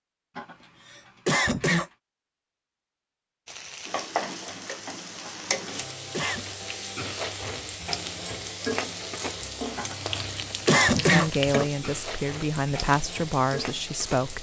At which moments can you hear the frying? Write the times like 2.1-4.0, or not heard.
3.5-14.3.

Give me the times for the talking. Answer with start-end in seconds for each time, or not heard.
10.9-14.3.